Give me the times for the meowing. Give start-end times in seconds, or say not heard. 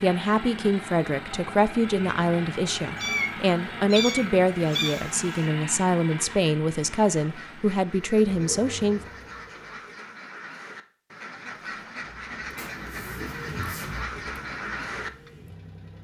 3.0-5.5, 12.6-14.0.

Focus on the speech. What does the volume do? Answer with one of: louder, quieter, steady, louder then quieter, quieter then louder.
steady.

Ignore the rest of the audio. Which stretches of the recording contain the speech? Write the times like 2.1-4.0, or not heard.
0.0-9.0.